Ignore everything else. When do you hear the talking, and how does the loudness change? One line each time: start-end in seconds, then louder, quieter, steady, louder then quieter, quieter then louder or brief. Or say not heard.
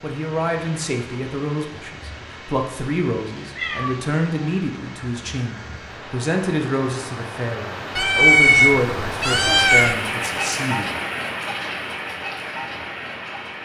0.0-10.9 steady.